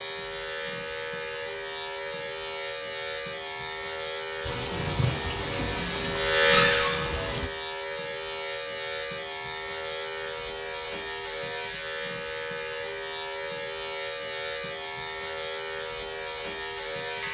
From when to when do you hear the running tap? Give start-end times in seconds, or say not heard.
4.4-7.5.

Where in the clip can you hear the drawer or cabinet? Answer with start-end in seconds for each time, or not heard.
6.5-7.0.